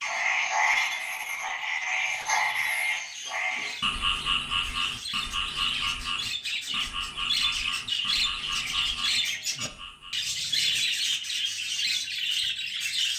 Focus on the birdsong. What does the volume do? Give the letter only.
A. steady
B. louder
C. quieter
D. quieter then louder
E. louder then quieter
B.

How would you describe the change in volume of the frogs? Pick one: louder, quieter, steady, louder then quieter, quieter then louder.
quieter.